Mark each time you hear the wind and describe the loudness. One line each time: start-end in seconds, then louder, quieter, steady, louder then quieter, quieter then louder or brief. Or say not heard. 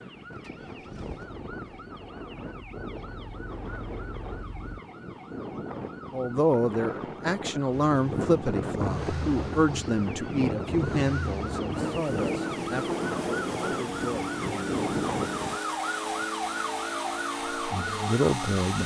0.0-15.6 louder.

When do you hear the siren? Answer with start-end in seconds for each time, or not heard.
0.0-18.8.